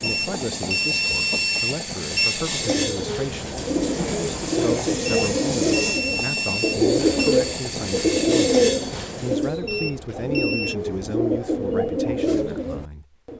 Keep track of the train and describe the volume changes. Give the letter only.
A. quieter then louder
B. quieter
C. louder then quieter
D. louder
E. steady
E.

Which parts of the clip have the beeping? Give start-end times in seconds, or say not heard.
0.0-2.4, 5.0-7.3, 9.7-10.8.